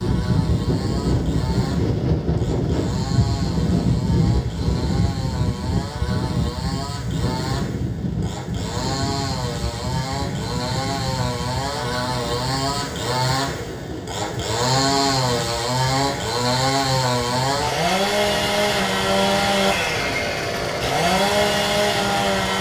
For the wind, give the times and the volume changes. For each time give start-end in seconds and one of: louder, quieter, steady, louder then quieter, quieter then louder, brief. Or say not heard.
0.0-22.5 quieter.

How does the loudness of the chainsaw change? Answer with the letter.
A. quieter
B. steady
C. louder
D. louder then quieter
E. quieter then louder
C.